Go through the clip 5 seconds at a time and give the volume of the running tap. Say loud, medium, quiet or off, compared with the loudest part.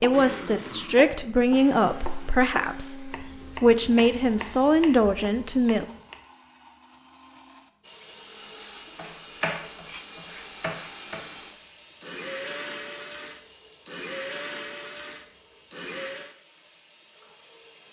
off, loud, loud, medium.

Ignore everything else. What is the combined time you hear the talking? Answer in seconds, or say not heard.
6 s.